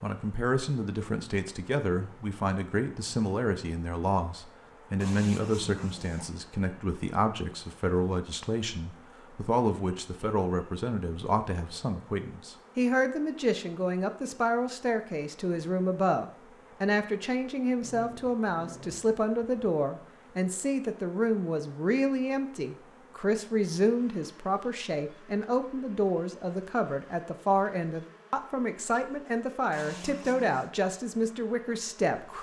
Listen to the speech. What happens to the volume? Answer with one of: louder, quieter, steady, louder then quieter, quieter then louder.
steady.